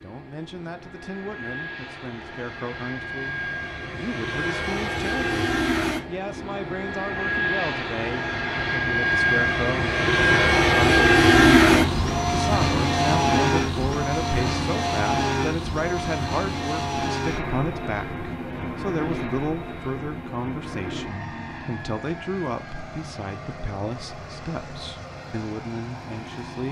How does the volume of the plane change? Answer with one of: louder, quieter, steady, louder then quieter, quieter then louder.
louder then quieter.